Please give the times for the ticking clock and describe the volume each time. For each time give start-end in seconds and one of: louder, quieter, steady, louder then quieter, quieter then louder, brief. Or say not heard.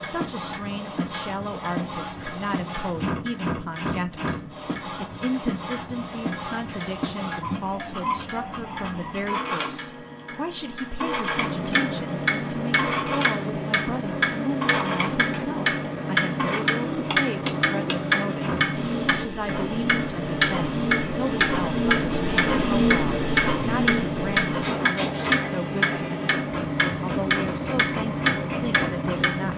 0.0-29.5 louder.